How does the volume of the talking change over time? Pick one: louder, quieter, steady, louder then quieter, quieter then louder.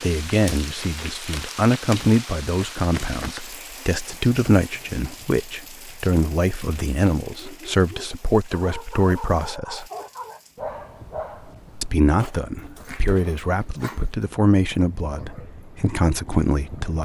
steady.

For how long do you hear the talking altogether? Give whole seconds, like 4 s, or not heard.
15 s.